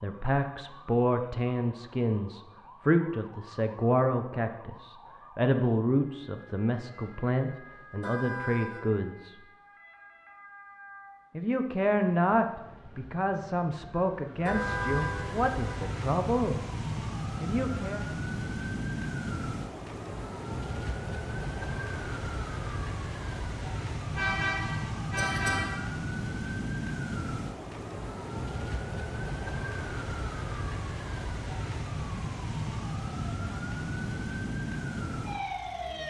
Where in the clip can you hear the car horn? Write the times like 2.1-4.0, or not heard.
7.8-8.8, 14.4-15.8, 24.1-25.9.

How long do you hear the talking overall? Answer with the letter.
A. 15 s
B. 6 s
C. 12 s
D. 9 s
A.